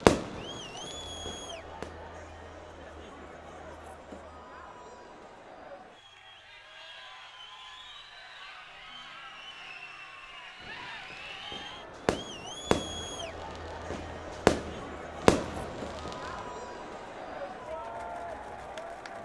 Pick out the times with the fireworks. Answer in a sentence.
You can hear the fireworks from 0.0 to 2.1 s and from 10.6 to 16.1 s.